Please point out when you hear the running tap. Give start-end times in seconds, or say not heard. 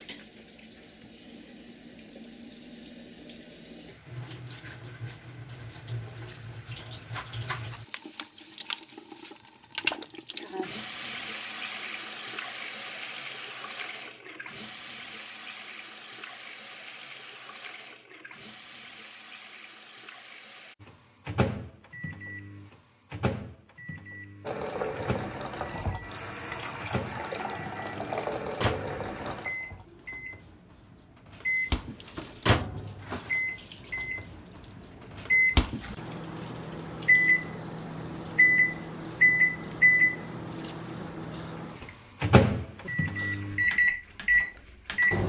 0.0-20.8, 24.4-45.1.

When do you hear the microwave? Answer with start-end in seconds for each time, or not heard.
20.8-45.2.